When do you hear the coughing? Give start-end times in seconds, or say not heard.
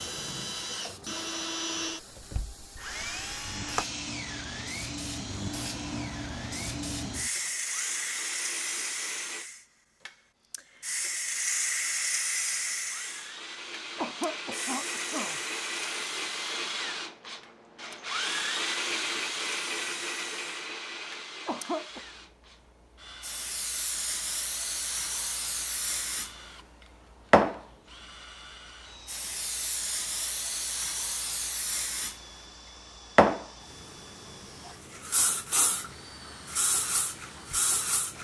13.9-15.4, 21.4-22.0.